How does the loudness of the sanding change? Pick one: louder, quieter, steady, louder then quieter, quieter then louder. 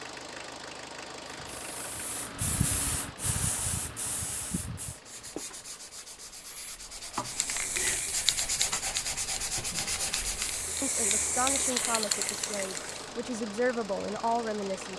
louder.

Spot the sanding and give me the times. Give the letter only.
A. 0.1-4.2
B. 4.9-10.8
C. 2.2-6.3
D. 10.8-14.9
B.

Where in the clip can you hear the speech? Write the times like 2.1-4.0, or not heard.
10.8-14.9.